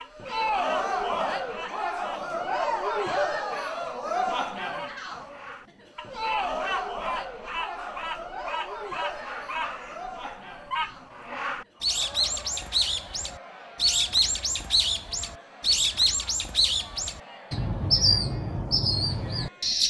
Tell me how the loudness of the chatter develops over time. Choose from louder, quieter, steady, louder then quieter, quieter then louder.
quieter.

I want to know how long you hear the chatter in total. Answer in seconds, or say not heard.
20 s.